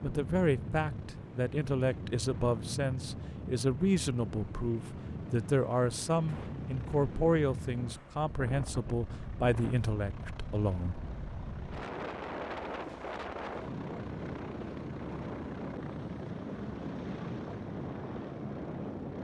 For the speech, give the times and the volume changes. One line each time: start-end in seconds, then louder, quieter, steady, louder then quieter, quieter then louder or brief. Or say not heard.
0.0-10.9 steady.